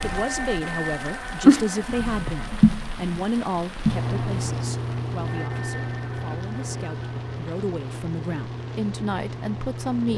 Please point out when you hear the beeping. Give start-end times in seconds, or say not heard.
not heard.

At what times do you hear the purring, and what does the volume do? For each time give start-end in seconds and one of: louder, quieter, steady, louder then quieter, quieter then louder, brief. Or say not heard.
0.0-10.1 quieter.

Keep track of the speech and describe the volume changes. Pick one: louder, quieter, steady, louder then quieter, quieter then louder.
quieter then louder.